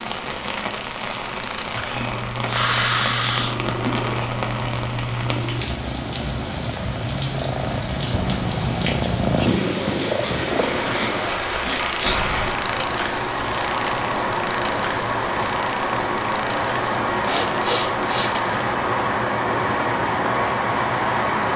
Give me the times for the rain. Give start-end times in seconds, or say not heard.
0.0-21.5.